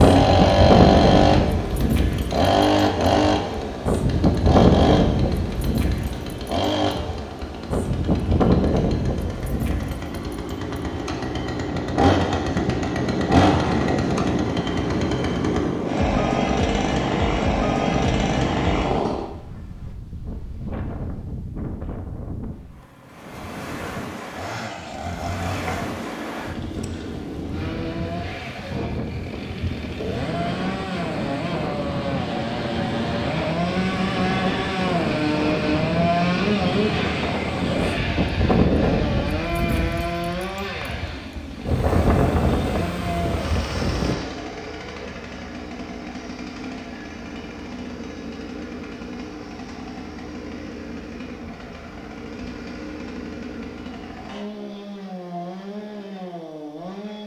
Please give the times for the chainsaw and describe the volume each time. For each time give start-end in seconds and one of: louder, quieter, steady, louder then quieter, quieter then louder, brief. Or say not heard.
0.0-19.3 quieter then louder
24.2-57.2 louder then quieter.